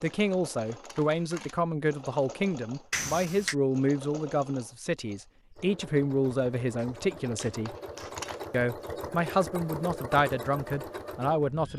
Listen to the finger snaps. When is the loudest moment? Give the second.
3 s.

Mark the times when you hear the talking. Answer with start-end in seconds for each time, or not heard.
0.0-7.8, 8.5-11.7.